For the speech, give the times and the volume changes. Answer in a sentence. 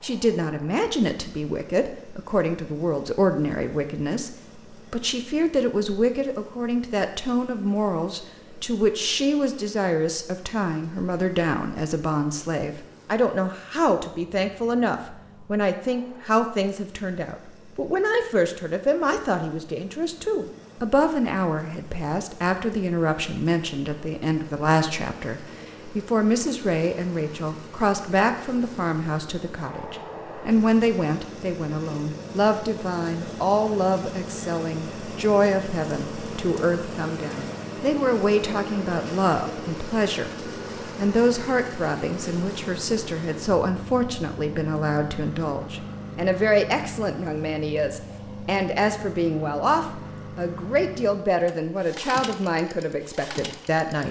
The speech can be heard from 0.0 to 54.0 s, at a steady volume.